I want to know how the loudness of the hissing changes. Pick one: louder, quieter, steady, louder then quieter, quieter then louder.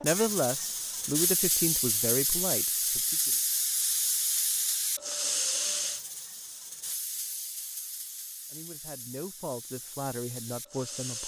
quieter.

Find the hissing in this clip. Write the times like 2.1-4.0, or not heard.
0.0-11.2.